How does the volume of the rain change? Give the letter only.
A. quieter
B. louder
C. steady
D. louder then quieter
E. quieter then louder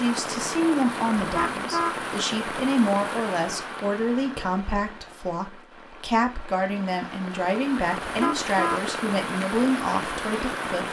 E.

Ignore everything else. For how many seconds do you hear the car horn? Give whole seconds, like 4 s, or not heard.
2 s.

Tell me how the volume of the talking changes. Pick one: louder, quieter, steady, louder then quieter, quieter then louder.
steady.